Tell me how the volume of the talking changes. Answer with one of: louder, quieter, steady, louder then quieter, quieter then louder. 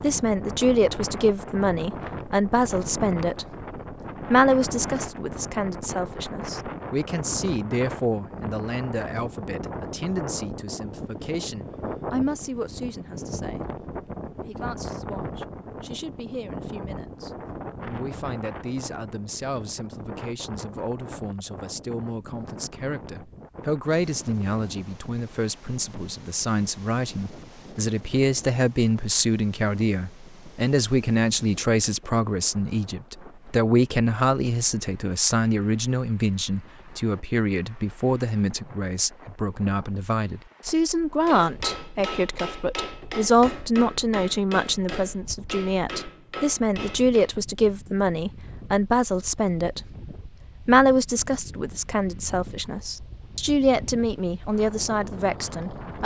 quieter then louder.